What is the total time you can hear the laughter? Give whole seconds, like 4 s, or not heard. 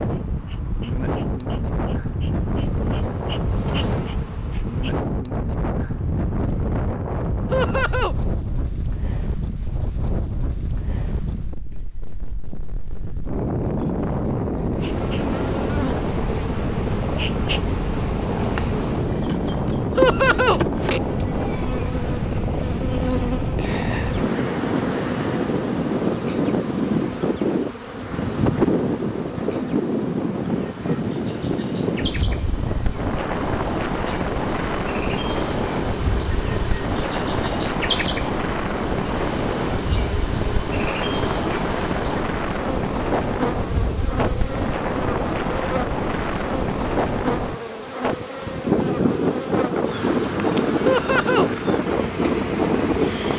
2 s.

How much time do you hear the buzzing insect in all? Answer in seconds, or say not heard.
44 s.